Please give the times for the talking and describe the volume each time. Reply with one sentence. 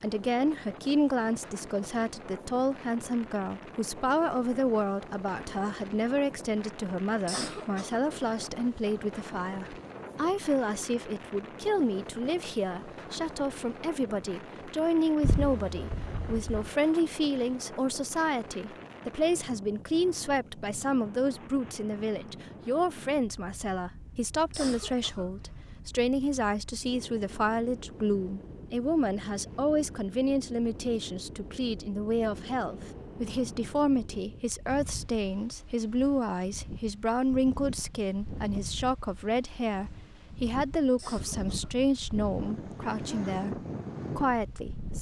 The talking can be heard from 0.0 to 44.9 s, at a steady volume.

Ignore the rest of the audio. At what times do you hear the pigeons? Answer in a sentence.
The pigeons can be heard from 15.2 to 16.8 s.